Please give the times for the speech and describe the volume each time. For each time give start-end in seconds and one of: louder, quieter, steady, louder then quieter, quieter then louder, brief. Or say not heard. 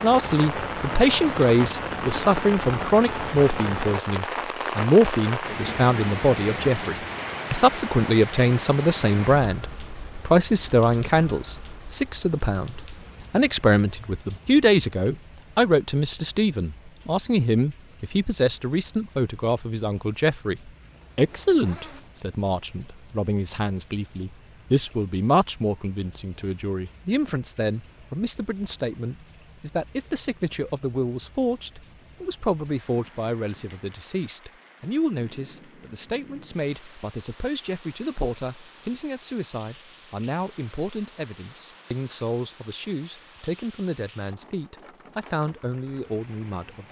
0.0-46.8 quieter.